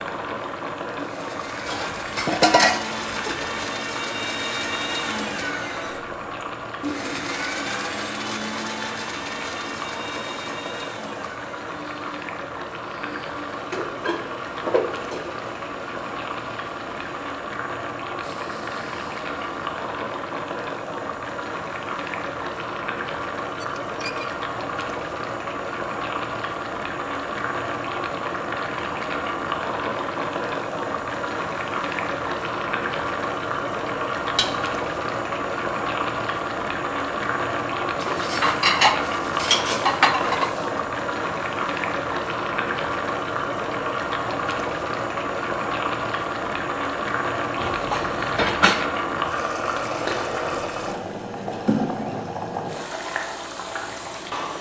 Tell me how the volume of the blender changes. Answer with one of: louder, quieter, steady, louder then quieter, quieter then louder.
quieter.